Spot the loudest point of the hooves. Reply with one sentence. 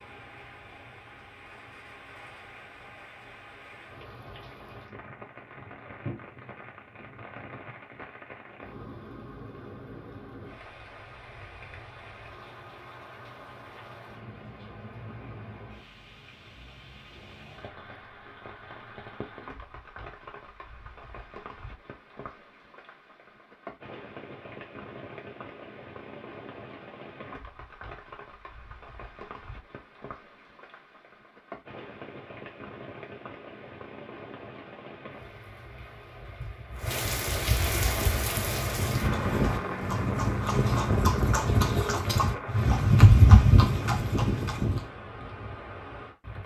The loudest moment of the hooves is at 43 seconds.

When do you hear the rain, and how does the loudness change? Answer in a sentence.
The rain can be heard from 0.0 to 46.4 s, getting louder.